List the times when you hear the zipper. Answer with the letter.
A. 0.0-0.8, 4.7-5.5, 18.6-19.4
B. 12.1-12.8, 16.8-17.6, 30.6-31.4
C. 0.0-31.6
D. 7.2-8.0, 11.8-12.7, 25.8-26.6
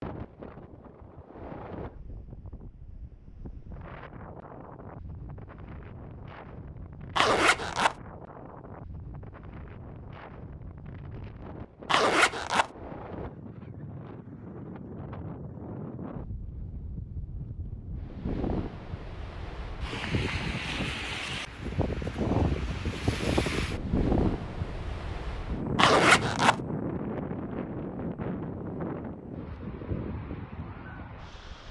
D.